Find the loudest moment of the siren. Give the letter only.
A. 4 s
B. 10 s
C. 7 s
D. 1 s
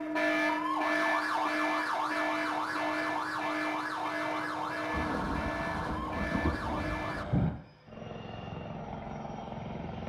D.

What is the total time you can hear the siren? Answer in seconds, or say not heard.
7 s.